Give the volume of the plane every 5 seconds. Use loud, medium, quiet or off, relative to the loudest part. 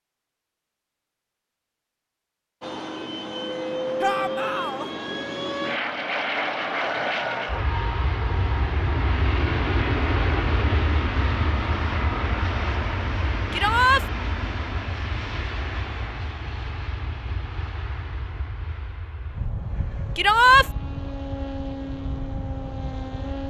loud, loud, loud, medium, medium.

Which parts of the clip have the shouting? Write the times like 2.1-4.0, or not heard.
4.0-4.9, 13.5-14.1, 20.1-20.6.